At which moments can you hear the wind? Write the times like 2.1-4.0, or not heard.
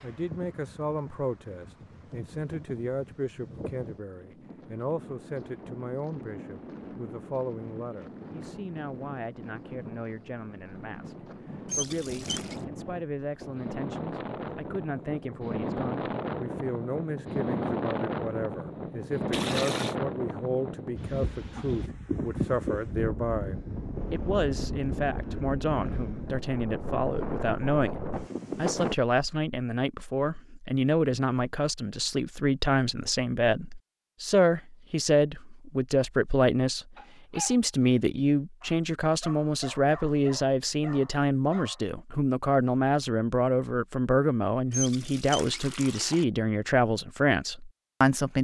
0.0-28.9.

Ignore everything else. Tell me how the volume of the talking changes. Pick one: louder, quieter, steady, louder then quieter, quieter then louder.
louder.